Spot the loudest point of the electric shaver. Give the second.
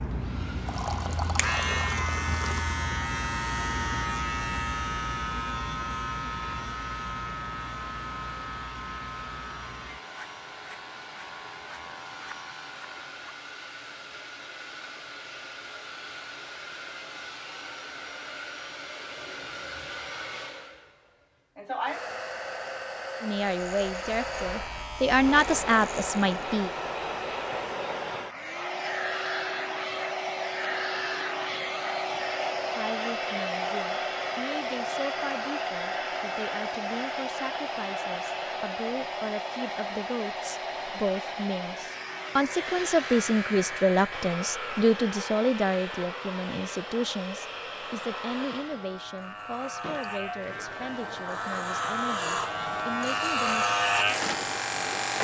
54 s.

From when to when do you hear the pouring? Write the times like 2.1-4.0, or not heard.
0.7-2.6.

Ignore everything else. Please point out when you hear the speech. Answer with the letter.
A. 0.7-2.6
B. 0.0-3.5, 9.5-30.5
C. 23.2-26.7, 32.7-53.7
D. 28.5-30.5
C.